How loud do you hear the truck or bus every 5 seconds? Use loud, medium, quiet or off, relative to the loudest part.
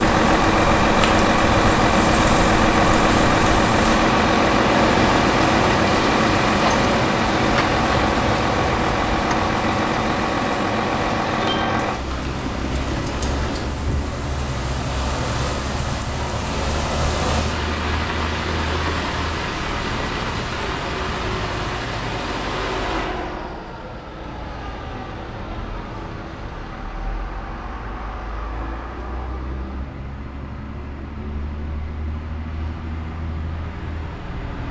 loud, loud, medium, quiet, quiet, quiet, quiet.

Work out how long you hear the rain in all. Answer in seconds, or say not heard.
23 s.